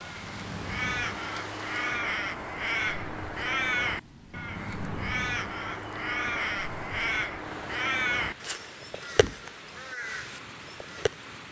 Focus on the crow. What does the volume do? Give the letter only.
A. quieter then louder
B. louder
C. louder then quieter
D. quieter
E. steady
D.